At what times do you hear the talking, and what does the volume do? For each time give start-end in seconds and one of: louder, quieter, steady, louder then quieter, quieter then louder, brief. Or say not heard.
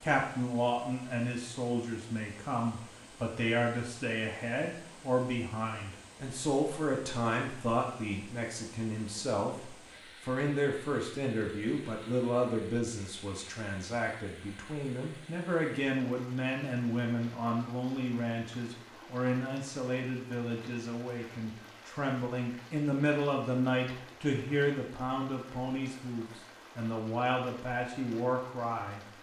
0.0-29.0 steady.